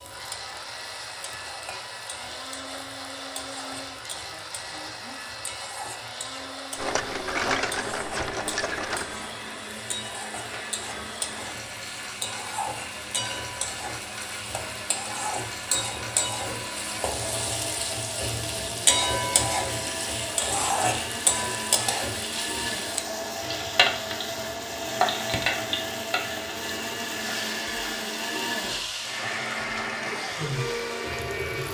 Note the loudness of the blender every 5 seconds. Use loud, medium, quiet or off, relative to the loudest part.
medium, medium, medium, medium, loud, loud, loud.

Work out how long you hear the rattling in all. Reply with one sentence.
You can hear the rattling for 2 seconds altogether.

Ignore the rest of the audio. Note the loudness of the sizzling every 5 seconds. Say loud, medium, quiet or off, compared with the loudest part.
quiet, medium, medium, loud, loud, loud, medium.